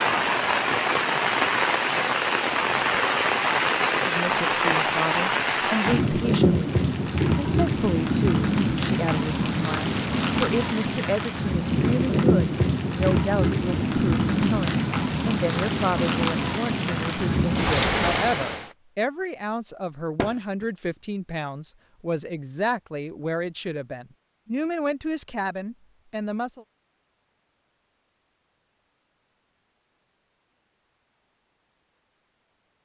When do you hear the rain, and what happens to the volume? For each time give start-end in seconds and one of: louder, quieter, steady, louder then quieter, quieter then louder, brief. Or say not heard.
0.0-18.7 steady.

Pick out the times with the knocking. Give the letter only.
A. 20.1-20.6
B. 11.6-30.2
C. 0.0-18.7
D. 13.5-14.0
A.